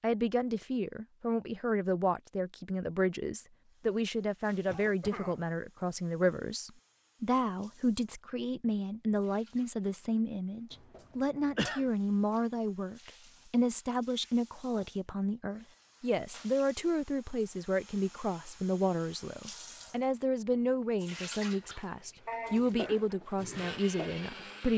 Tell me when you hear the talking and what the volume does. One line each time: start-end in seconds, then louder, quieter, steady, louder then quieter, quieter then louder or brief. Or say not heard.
0.0-24.7 steady.